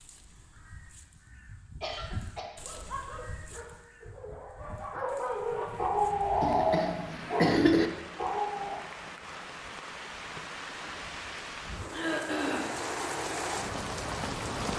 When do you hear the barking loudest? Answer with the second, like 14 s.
7 s.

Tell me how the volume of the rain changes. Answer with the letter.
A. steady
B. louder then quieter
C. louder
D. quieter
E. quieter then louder
C.